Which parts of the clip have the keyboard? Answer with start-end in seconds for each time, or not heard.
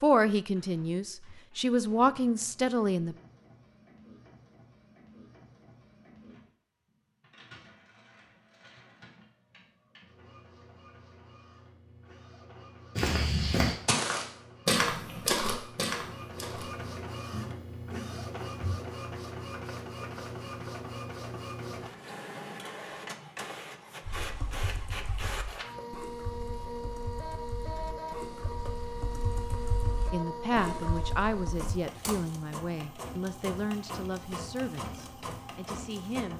24.0-31.7.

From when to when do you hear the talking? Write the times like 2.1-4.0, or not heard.
0.0-3.1, 30.1-36.3.